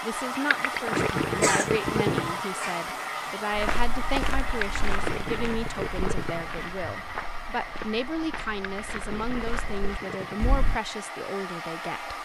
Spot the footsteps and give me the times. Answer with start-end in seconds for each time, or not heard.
3.5-10.8.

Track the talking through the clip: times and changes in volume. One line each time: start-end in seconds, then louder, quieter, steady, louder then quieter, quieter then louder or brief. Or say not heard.
0.0-12.2 steady.